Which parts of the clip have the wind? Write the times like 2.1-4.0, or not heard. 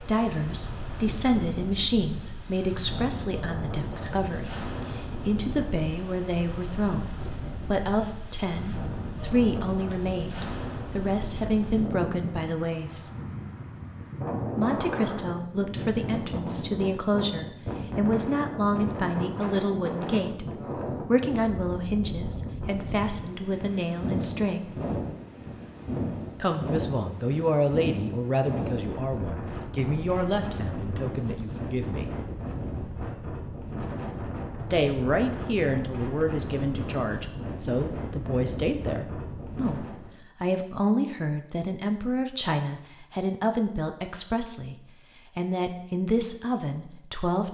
0.0-40.1.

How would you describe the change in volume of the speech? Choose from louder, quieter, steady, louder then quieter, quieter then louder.
steady.